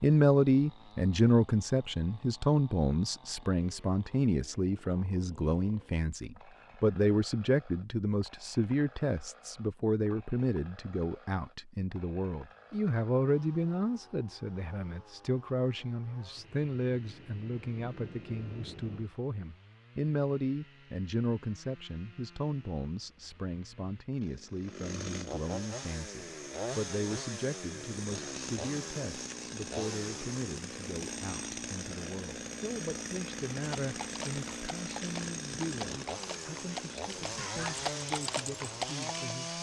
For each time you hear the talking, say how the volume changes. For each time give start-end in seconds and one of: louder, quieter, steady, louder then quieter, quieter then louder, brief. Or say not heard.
0.0-39.5 quieter.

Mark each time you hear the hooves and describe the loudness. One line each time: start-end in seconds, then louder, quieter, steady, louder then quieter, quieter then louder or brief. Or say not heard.
33.5-39.4 louder.